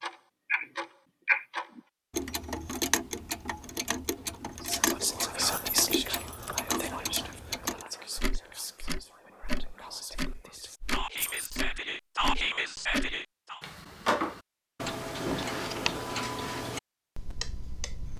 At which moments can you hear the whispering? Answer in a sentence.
You can hear the whispering from 4.6 to 13.6 s.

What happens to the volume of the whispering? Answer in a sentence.
The loudness of the whispering goes down, then up.